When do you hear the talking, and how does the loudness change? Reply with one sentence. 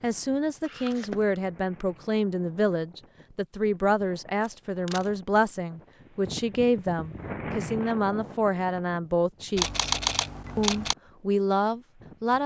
You can hear the talking from 0.0 to 9.8 s, at a steady volume; and briefly from 10.6 to 12.4 s.